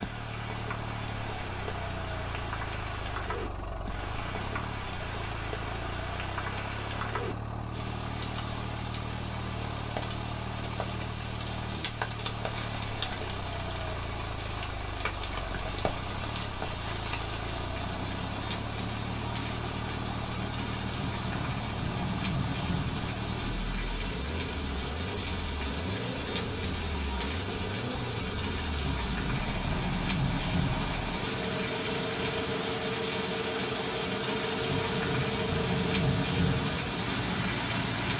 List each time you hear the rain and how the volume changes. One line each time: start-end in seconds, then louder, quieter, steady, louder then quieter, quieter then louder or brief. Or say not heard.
0.0-38.1 louder.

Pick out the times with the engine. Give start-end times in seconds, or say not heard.
0.0-38.1.